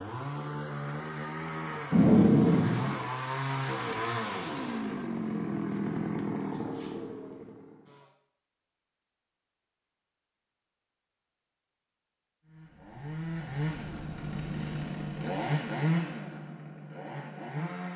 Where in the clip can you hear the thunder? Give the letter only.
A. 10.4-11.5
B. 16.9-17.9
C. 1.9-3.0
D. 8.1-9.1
C.